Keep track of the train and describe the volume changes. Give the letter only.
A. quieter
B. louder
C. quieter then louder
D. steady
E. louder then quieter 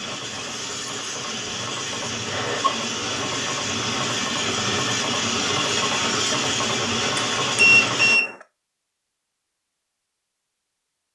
B.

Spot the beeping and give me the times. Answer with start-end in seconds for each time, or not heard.
2.3-2.8, 7.2-8.3.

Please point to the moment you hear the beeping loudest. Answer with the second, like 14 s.
8 s.